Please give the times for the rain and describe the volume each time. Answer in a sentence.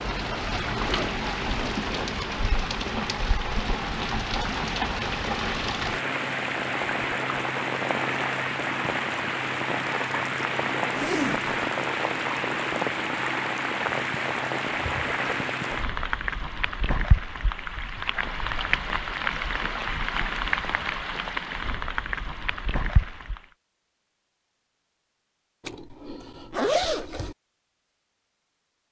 The rain can be heard from 0.0 to 23.4 s, at a steady volume.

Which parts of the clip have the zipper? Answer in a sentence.
You can hear the zipper from 0.8 to 2.2 s, from 10.9 to 11.5 s and from 25.6 to 27.4 s.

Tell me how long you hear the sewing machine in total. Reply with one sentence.
You can't hear the sewing machine here.